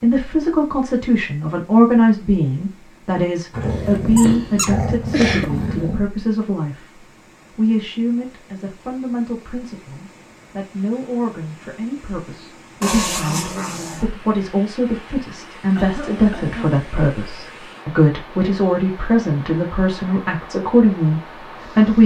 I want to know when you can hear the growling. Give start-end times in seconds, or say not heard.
3.5-6.0, 12.8-14.1.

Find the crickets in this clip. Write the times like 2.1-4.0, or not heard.
not heard.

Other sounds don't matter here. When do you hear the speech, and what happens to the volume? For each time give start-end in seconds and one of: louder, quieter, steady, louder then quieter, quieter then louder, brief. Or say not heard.
0.0-22.0 quieter then louder.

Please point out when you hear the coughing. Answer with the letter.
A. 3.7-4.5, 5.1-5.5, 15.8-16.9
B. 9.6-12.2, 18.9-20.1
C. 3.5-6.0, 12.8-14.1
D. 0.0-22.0
A.